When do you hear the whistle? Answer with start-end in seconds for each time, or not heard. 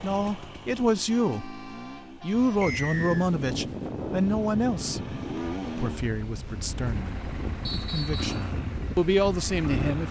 2.6-3.3, 7.7-8.4.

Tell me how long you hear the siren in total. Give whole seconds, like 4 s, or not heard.
not heard.